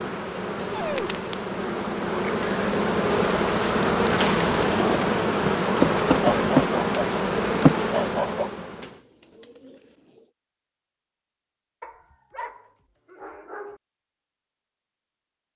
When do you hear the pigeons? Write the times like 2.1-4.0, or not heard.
3.1-5.2, 8.8-10.2.